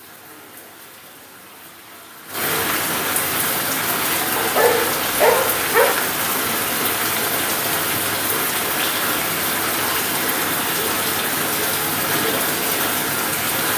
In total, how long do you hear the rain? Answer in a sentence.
The rain can be heard for 14 seconds in total.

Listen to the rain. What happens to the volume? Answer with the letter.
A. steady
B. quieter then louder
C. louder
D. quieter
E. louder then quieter
C.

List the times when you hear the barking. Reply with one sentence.
You can hear the barking from 4.3 to 6.0 s.